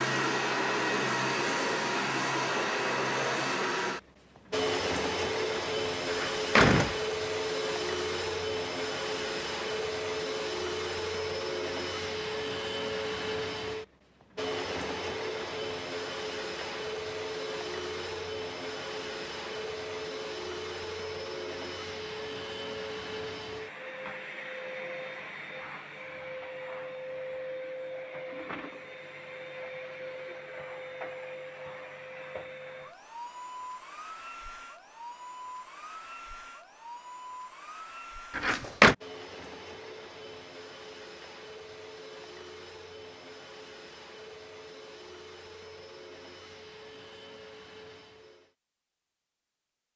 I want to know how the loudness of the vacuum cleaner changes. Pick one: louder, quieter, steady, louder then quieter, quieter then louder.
quieter.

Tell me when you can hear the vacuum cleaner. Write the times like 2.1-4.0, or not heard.
0.0-48.5.